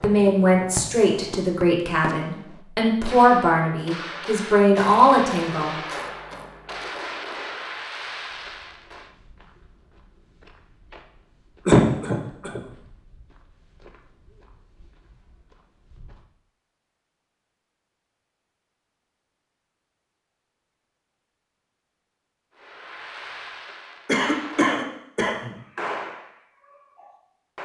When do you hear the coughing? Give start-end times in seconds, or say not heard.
4.7-6.8, 11.7-12.6, 24.1-25.6.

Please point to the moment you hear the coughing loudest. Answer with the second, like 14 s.
12 s.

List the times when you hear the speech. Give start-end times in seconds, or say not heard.
0.0-5.8.